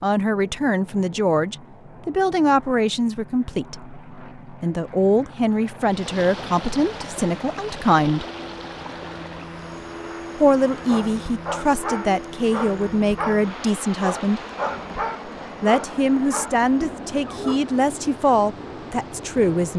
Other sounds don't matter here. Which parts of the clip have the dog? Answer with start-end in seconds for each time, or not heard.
10.8-17.6.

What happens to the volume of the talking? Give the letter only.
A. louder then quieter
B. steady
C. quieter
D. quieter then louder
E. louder
B.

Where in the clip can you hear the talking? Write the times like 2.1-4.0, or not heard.
0.0-8.2, 10.3-14.4, 15.6-19.7.